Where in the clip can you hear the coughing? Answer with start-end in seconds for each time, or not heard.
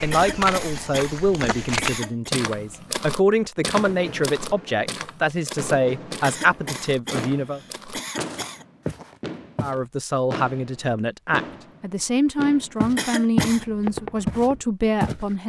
0.1-2.3, 6.2-8.7, 12.9-13.7.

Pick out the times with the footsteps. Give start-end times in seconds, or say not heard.
0.0-9.8, 12.8-13.6, 14.2-15.2.